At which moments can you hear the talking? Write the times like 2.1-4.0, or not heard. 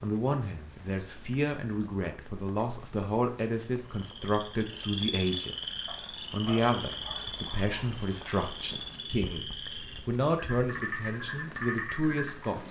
0.0-5.5, 6.3-12.6.